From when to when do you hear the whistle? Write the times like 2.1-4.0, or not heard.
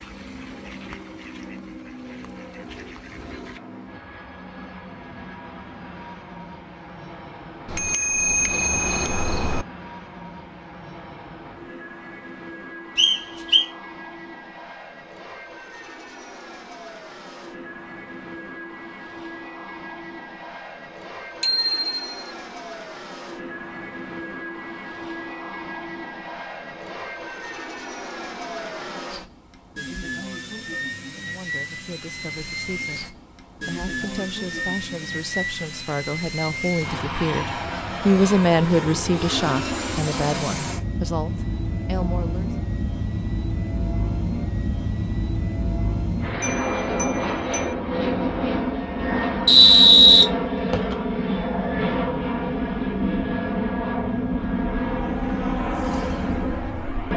12.9-13.7, 49.5-51.0.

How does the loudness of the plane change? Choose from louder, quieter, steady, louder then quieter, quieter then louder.
louder.